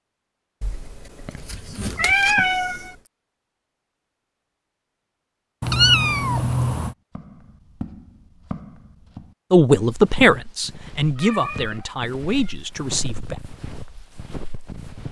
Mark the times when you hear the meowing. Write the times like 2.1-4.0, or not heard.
0.6-2.9, 5.6-7.0, 11.2-12.6.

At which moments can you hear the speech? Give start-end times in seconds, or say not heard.
9.5-13.4.